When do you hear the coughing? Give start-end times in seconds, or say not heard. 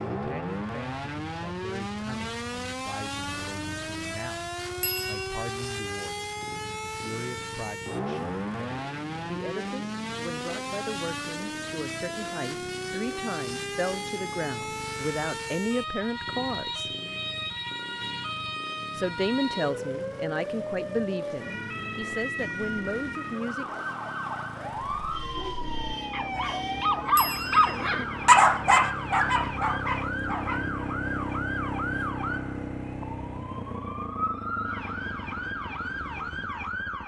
not heard.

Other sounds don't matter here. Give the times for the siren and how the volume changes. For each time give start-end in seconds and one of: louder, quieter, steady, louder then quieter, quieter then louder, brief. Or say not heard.
0.0-37.0 steady.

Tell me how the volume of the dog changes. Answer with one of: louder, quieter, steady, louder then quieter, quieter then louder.
louder then quieter.